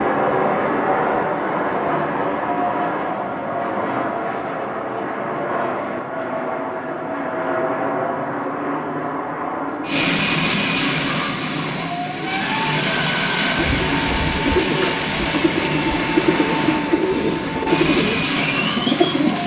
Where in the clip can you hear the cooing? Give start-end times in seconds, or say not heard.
13.6-19.4.